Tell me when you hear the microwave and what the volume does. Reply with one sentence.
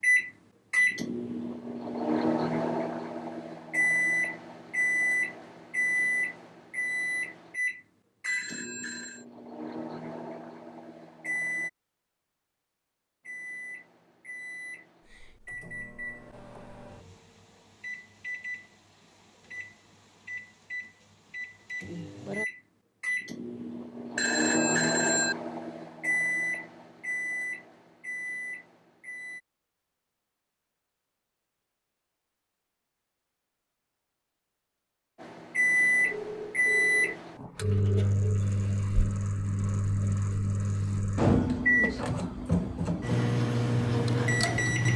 The microwave can be heard from 0.0 to 11.7 s, getting quieter; from 13.2 to 29.4 s, getting louder; and from 35.2 to 44.9 s, getting quieter then louder.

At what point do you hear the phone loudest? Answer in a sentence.
The loudest moment of the phone is at 25 seconds.